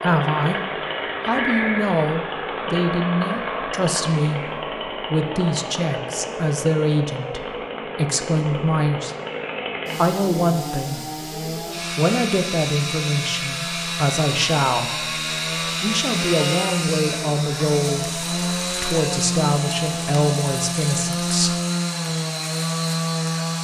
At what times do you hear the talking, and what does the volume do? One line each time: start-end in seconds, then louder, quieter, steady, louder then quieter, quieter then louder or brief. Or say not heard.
0.0-0.6 brief
1.2-9.1 steady
9.9-11.0 brief
11.9-21.6 steady.